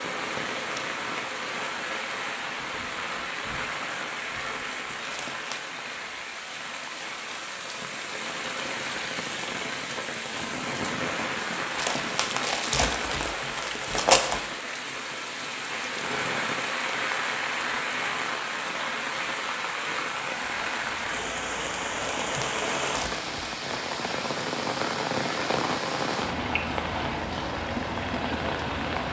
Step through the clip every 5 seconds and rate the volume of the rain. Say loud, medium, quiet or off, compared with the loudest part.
loud, medium, loud, loud, loud, loud.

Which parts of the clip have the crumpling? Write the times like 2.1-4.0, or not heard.
5.1-5.7, 11.8-14.4, 22.0-23.6.